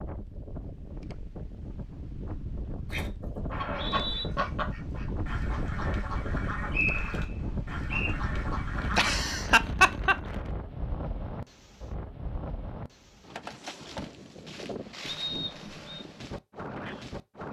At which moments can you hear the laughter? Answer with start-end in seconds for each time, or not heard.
8.9-10.2.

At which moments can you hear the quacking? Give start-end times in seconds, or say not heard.
2.9-9.2.